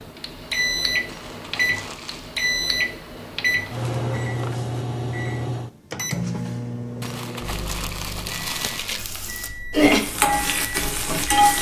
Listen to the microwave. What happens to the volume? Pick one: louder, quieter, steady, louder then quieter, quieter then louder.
quieter.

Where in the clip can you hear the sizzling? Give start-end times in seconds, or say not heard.
8.9-11.5.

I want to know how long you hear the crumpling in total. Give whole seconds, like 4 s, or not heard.
3 s.